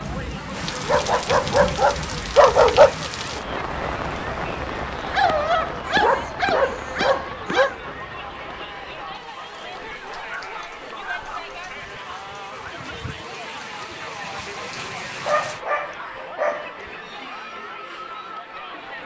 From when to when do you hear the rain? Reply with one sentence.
The rain can be heard from 0.0 to 15.6 s.